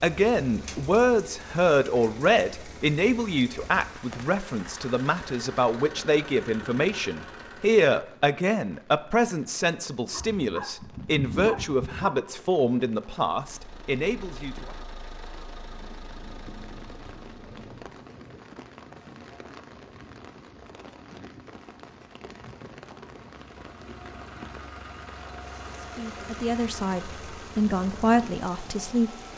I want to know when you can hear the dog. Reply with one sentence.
You can hear the dog from 10.1 to 12.1 s.